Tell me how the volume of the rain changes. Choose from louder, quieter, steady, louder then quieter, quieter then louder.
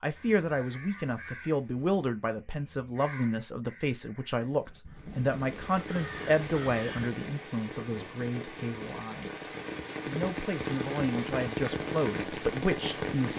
louder.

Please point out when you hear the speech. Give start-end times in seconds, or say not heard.
0.0-9.4, 10.1-13.3.